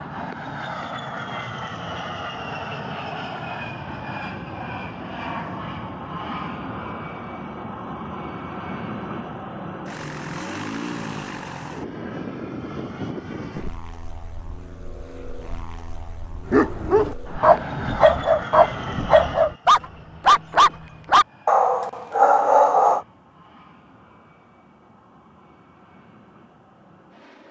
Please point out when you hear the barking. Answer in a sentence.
The barking can be heard from 16.4 to 23.0 s.